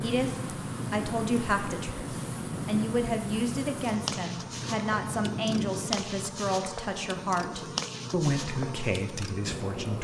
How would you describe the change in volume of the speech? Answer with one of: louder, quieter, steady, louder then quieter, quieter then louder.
steady.